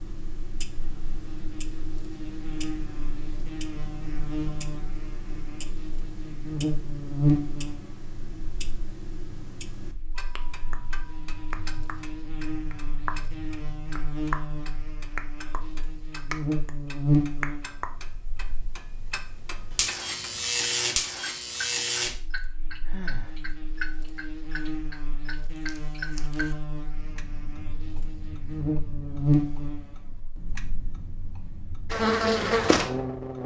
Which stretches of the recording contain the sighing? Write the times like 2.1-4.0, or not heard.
22.9-23.4.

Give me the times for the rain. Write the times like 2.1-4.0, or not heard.
not heard.